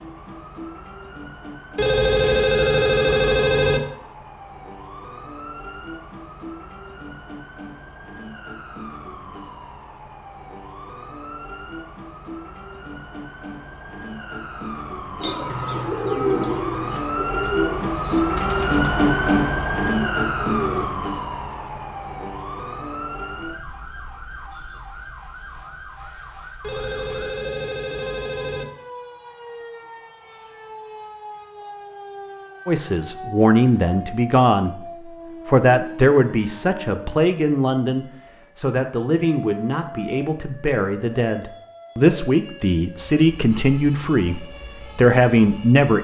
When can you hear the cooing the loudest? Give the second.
16 s.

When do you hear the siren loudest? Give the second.
19 s.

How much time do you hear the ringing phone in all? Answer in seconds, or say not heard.
4 s.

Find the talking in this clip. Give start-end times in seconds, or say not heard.
32.6-45.9.